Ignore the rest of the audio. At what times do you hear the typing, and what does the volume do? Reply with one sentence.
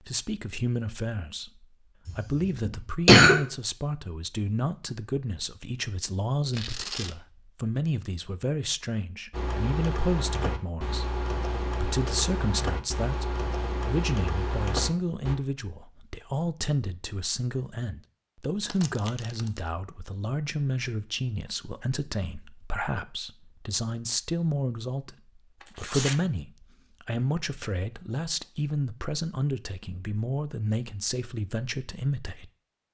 You can hear the typing from 9.3 to 15.3 s, at a steady volume.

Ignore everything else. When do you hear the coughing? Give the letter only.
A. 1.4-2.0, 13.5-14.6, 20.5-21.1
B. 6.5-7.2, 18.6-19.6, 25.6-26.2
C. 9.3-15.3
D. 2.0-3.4
D.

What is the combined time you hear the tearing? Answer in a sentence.
You can hear the tearing for 2 seconds altogether.